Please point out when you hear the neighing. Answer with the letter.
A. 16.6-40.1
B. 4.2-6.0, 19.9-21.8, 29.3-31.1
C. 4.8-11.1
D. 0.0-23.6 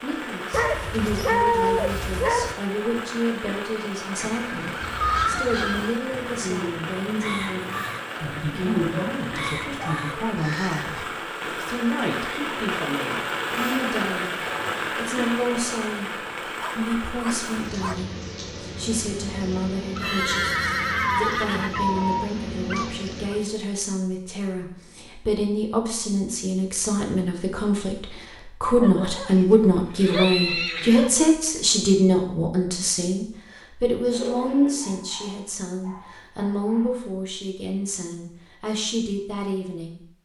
B.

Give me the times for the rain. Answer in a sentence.
The rain can be heard from 0.0 to 23.6 s.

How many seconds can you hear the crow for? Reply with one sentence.
The crow can be heard for 6 seconds in total.